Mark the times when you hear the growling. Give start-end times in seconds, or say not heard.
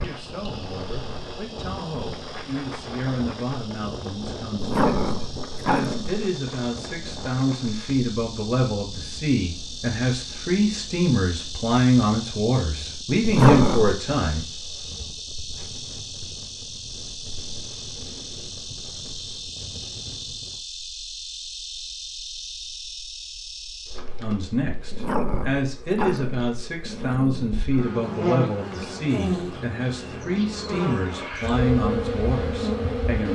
4.5-6.2, 13.2-13.9, 24.9-27.6.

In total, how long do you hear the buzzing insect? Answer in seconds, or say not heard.
33 s.